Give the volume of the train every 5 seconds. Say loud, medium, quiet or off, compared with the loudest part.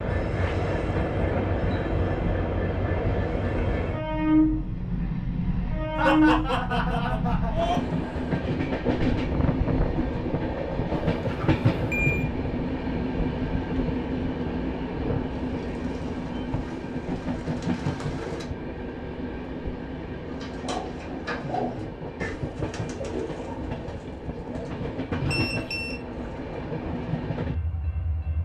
loud, loud, loud, medium, medium, medium.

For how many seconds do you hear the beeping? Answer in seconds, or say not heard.
2 s.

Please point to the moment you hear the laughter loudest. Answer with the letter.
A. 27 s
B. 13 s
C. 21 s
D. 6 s
D.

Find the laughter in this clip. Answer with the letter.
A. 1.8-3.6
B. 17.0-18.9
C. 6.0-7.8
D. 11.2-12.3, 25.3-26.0
C.